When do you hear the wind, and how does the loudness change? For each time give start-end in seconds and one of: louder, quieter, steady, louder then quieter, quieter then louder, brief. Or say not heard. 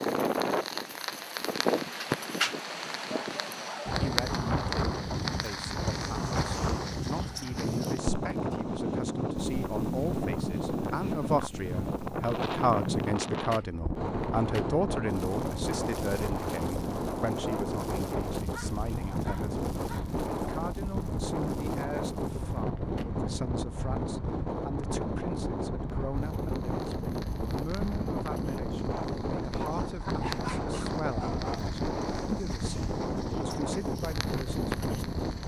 0.0-35.4 steady.